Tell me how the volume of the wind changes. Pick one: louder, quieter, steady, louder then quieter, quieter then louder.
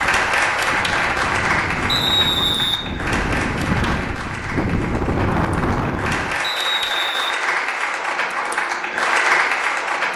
louder.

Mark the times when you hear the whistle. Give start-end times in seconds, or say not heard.
1.9-2.8, 6.4-7.3.